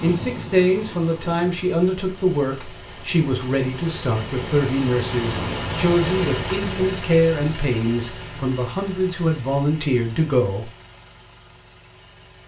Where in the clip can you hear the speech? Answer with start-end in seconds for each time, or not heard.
0.0-10.7.